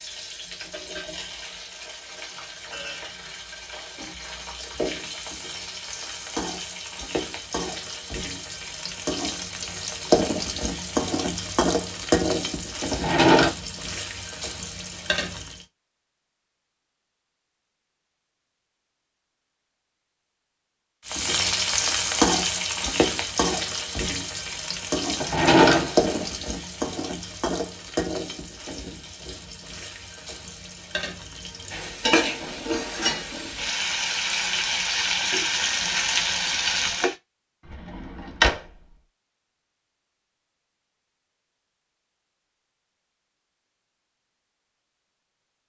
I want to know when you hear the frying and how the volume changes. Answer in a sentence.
You can hear the frying from 0.0 to 15.6 s, getting louder then quieter; and from 21.1 to 37.1 s, getting quieter then louder.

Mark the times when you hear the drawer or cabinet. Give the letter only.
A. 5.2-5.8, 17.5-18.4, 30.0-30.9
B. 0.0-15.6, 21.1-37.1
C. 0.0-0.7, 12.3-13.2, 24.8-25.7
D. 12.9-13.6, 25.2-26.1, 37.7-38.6
D.